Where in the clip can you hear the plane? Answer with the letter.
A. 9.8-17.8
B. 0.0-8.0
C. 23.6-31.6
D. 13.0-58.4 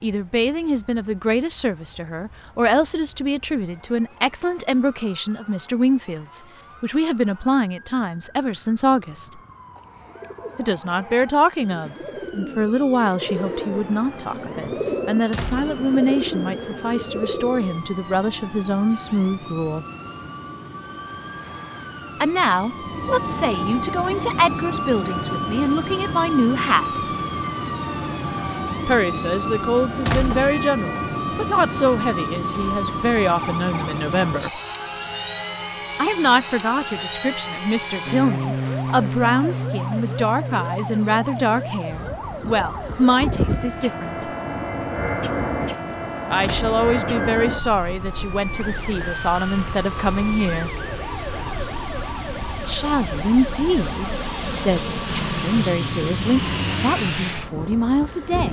D.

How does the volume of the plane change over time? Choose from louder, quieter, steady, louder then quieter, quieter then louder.
louder.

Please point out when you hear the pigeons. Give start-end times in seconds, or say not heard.
9.8-17.8.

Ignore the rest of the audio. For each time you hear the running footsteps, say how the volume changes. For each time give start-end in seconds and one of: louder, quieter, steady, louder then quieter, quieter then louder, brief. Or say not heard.
not heard.